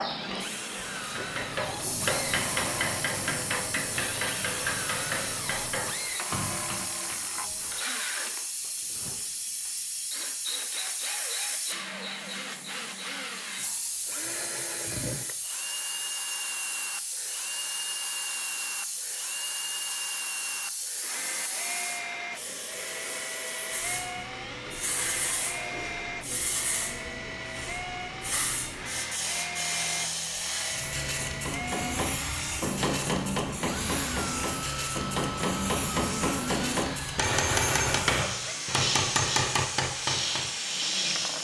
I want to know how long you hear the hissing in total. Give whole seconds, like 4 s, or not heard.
41 s.